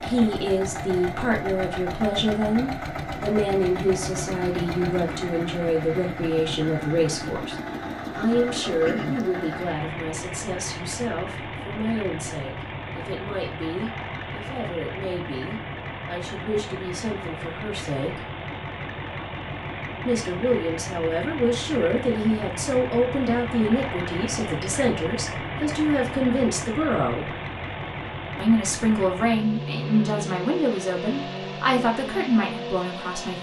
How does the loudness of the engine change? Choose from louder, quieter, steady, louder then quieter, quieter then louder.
steady.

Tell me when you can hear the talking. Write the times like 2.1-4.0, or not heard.
0.0-7.5, 8.2-18.2, 20.1-27.3, 28.4-33.3.